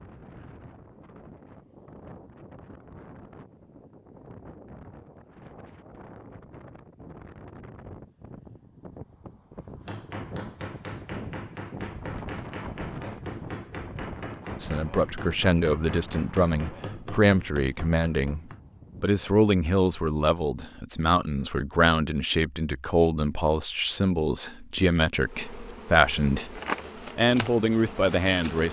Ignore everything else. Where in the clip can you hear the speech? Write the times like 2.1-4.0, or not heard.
14.6-18.4, 19.0-28.6.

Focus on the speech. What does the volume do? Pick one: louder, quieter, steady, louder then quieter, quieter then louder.
steady.